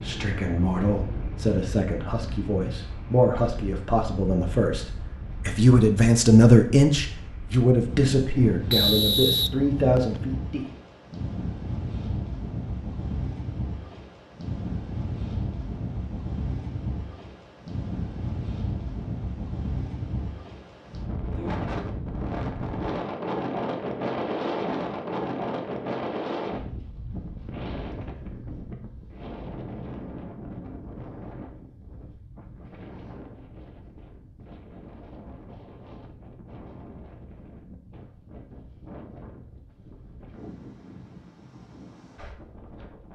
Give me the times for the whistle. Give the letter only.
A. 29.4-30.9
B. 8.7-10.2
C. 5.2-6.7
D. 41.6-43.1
B.